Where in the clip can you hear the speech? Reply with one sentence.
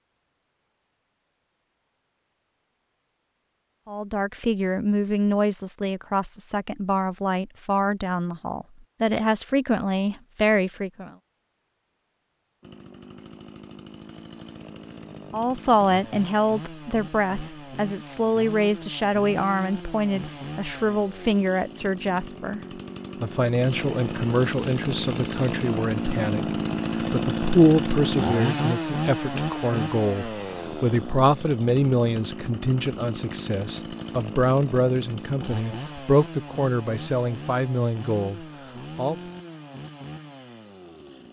You can hear the speech from 3.9 to 11.1 s, from 15.3 to 22.6 s and from 23.2 to 39.1 s.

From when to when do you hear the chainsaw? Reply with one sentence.
The chainsaw can be heard from 12.6 to 41.2 s.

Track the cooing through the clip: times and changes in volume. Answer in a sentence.
The cooing can't be heard in this clip.